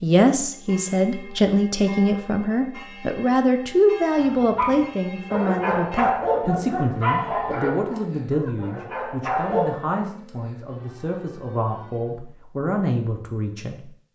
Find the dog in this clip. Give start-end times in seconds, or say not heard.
4.2-9.7.